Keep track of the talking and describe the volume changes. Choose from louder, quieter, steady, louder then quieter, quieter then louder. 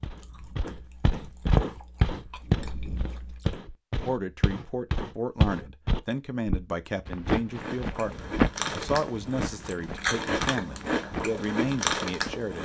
steady.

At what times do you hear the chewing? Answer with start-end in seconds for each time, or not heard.
0.0-3.6, 7.5-12.6.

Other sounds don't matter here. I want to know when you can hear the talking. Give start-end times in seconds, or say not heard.
4.0-12.6.